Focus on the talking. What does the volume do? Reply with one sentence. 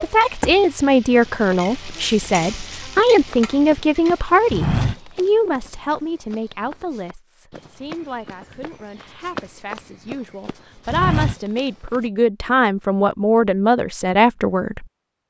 The volume of the talking goes down, then up.